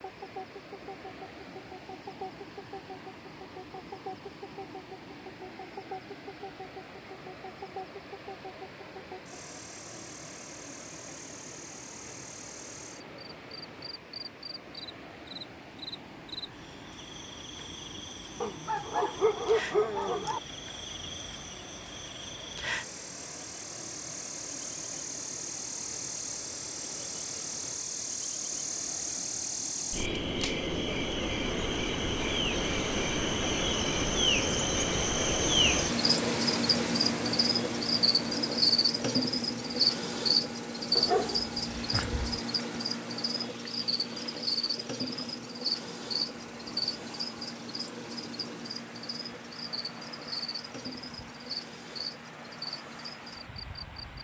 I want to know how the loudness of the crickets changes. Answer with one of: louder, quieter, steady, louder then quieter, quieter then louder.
louder then quieter.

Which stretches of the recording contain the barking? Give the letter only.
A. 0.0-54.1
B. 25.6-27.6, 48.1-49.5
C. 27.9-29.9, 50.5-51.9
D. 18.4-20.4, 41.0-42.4
D.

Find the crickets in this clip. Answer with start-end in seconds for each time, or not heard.
0.0-54.1.